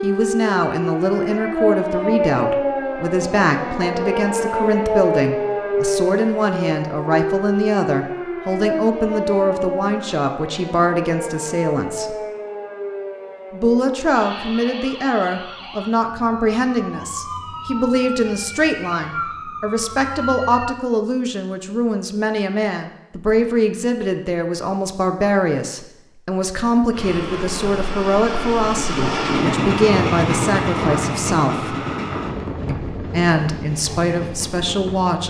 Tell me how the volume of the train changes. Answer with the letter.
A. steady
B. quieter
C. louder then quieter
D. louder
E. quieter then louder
C.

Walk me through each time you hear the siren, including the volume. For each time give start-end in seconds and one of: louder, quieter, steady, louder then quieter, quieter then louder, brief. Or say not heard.
0.0-20.7 quieter.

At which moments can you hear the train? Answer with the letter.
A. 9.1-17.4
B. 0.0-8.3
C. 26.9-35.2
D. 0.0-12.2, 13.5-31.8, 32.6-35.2
C.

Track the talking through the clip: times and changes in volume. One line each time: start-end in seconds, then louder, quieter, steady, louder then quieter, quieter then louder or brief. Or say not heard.
0.0-12.2 steady
13.5-31.8 steady
32.6-35.2 brief.